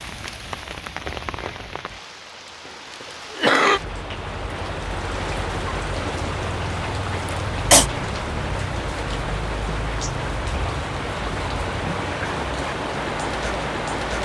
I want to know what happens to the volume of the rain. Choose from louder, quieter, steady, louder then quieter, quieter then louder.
louder.